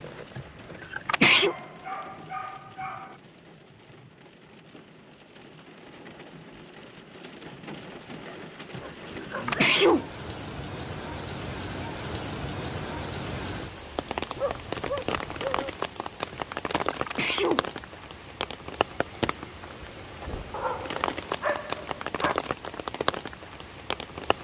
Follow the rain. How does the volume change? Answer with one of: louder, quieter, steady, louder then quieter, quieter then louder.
louder.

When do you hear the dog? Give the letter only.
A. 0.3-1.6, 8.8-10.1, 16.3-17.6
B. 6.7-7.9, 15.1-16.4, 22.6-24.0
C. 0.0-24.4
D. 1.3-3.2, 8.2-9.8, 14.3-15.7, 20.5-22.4
D.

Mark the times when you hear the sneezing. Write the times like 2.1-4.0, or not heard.
0.3-1.6, 8.8-10.1, 16.3-17.6.